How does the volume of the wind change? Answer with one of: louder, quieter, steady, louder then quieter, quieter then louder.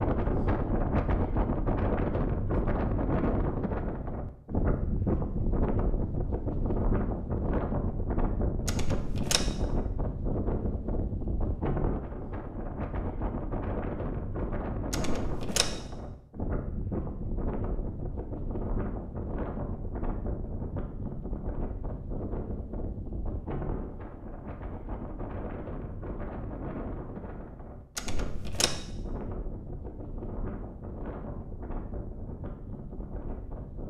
quieter.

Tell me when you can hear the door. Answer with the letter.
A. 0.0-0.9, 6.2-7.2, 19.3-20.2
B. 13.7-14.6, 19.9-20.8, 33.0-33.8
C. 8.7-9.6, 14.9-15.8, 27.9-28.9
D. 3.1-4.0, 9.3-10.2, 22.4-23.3
C.